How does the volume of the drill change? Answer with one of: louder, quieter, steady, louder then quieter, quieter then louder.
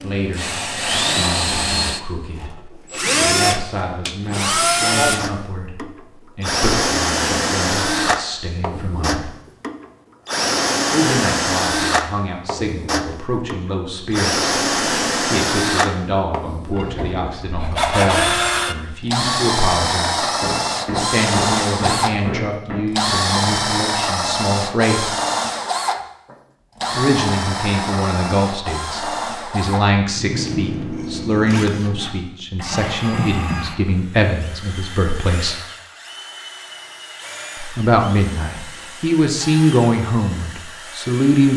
quieter.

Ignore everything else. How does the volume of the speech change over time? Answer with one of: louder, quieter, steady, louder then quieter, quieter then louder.
louder.